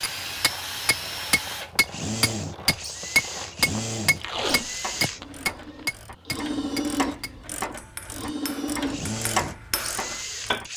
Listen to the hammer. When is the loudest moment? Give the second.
3 s.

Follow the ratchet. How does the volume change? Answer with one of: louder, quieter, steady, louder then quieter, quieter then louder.
louder.